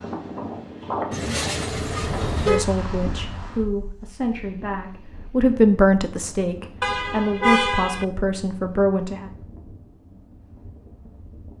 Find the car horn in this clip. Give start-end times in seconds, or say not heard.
1.1-2.6, 6.8-8.1.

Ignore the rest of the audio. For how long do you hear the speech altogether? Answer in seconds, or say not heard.
7 s.